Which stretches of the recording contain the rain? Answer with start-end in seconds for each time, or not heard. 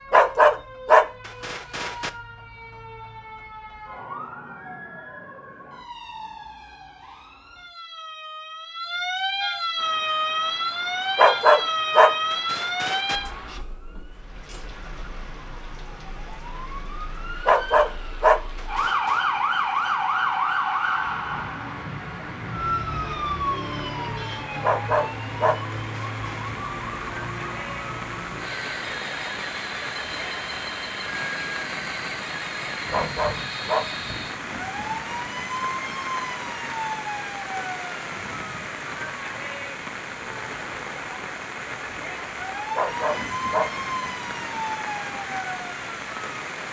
9.8-46.6.